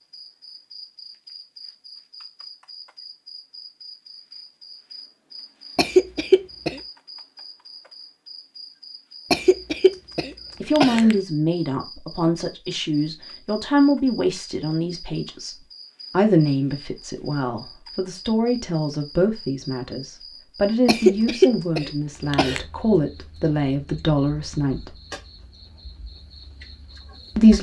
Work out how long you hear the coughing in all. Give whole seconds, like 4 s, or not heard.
5 s.